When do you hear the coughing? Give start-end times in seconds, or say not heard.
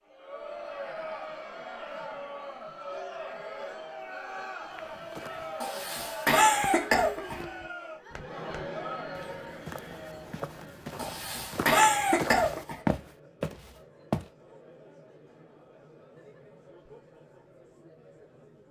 5.6-7.4, 10.9-12.8.